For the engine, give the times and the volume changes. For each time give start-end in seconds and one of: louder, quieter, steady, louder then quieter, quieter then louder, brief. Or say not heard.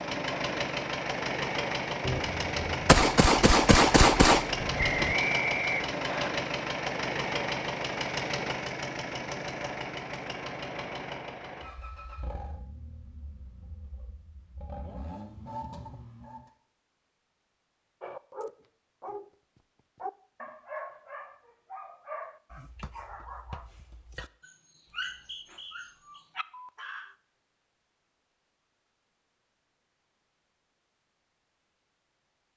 0.0-16.5 quieter.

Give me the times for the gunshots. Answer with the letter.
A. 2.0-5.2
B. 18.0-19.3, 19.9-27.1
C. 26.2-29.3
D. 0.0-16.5
A.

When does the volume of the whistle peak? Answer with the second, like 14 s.
5 s.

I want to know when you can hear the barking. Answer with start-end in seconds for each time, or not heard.
18.0-19.3, 19.9-27.1.